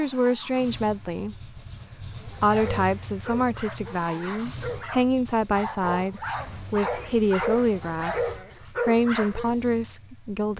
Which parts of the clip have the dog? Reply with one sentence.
The dog can be heard from 2.1 to 9.6 s.